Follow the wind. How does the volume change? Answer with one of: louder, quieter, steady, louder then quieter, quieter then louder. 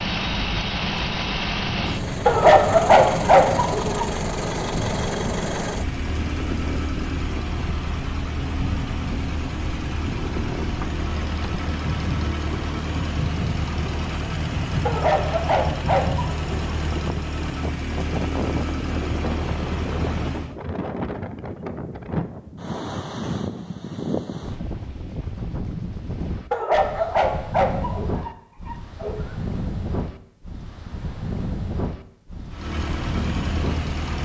steady.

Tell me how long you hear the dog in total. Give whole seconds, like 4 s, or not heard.
6 s.